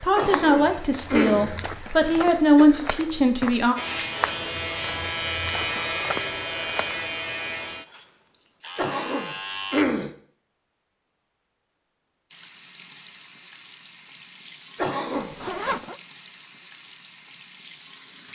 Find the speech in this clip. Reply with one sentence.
The speech can be heard from 0.0 to 3.8 s.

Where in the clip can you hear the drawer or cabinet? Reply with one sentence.
The drawer or cabinet can't be heard in this clip.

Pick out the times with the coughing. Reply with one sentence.
The coughing can be heard from 0.1 to 2.6 s, from 8.8 to 10.1 s and from 14.8 to 15.3 s.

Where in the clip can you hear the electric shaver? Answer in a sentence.
You can hear the electric shaver from 3.8 to 9.8 s.